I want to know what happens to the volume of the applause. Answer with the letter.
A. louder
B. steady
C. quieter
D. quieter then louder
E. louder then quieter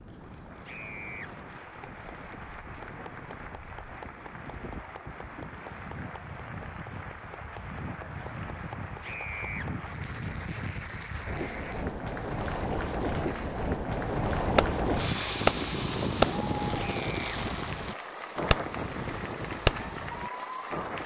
A.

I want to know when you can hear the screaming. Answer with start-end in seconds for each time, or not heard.
0.7-1.3, 9.0-9.7, 16.9-17.4.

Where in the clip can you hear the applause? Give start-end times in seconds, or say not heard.
0.0-21.0.